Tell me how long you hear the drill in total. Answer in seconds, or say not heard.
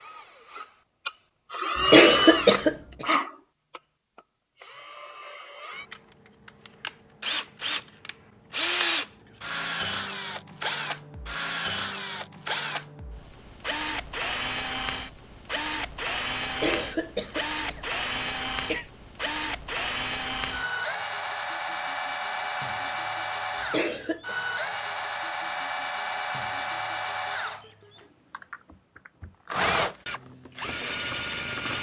32 s.